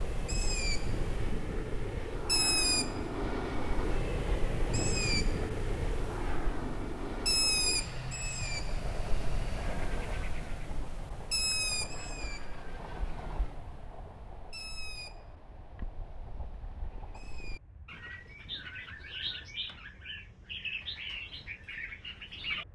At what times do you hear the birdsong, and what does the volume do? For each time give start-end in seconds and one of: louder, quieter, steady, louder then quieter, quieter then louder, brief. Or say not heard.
0.0-22.6 quieter then louder.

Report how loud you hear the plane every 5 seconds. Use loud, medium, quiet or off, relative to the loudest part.
loud, loud, quiet, quiet, quiet.